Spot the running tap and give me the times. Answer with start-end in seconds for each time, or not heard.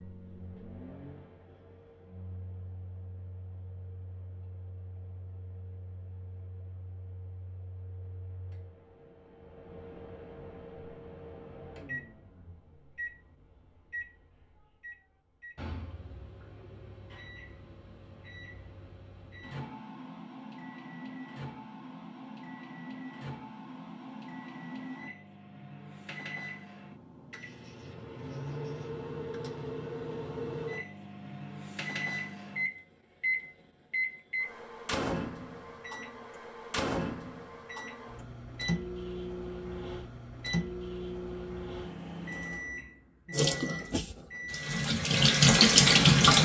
43.3-46.3.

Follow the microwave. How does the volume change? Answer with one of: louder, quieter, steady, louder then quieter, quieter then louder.
louder.